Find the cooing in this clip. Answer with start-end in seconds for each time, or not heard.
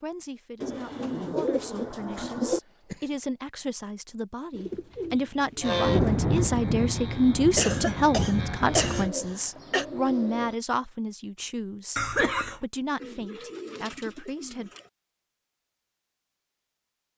0.6-2.6, 4.5-6.2, 8.8-10.6, 12.9-14.9.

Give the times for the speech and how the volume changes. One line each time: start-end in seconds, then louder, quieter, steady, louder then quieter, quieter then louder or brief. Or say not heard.
0.0-14.7 louder then quieter.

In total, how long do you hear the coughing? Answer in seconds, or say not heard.
4 s.